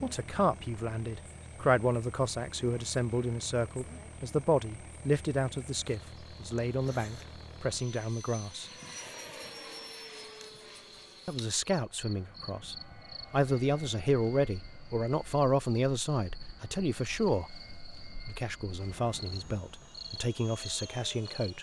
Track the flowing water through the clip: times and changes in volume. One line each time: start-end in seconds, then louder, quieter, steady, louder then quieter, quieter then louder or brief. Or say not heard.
not heard.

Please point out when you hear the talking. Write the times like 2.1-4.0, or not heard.
0.0-8.7, 11.2-17.5, 18.2-21.5.